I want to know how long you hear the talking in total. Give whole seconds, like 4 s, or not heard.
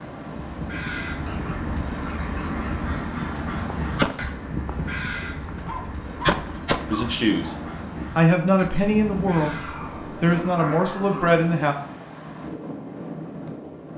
4 s.